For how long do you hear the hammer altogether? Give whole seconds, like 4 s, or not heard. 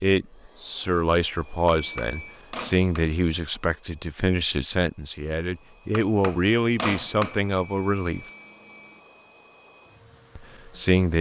3 s.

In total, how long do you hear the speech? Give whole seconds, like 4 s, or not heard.
9 s.